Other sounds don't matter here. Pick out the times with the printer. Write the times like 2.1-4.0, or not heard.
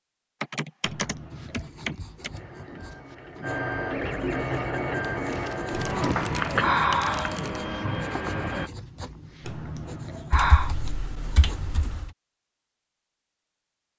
2.3-8.7.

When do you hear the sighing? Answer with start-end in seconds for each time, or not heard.
0.8-1.7, 5.7-7.4, 9.4-10.8.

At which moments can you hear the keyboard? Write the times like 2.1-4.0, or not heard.
0.4-2.3, 5.1-7.6, 10.3-12.1.